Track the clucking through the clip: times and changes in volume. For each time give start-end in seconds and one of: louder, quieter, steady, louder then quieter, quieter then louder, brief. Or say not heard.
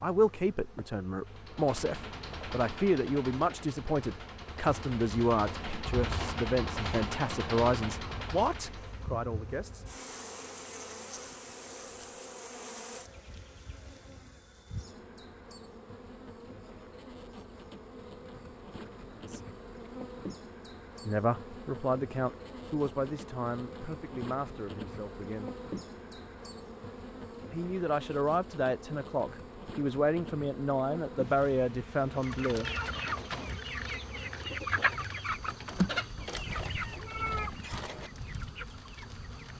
32.1-39.5 quieter.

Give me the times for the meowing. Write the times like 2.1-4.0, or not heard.
36.2-38.1.